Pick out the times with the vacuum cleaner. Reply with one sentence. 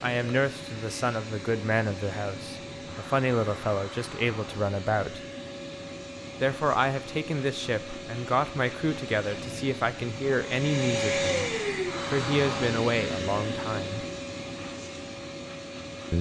The vacuum cleaner can be heard from 0.0 to 16.1 s.